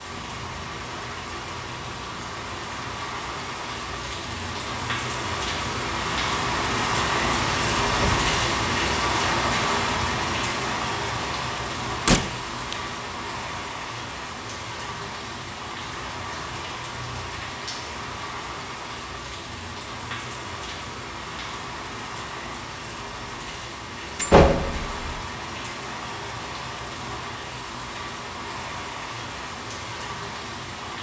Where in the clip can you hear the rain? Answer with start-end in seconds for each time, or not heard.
0.0-30.9.